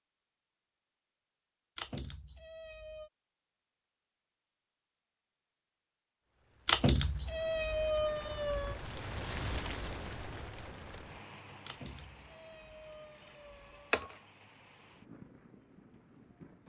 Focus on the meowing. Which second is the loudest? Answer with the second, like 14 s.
7 s.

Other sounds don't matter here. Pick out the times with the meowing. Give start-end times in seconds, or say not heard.
1.8-3.1, 6.7-8.8, 11.7-14.2.